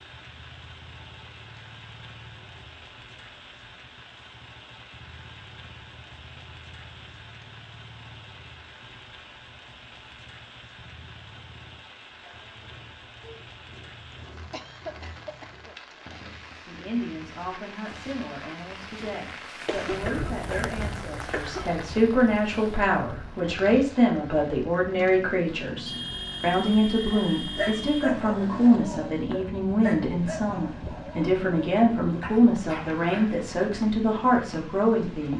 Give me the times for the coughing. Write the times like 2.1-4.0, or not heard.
14.1-15.8, 19.6-21.7.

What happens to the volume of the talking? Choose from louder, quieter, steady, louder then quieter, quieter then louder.
louder.